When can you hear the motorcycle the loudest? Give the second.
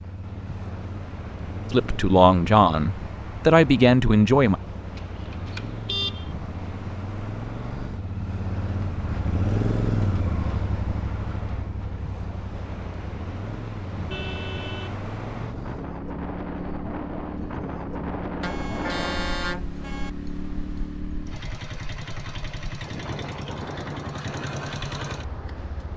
10 s.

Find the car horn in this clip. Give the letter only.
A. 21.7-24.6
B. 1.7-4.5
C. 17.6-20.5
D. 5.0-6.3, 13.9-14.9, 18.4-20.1
D.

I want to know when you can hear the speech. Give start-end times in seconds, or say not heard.
1.7-4.5.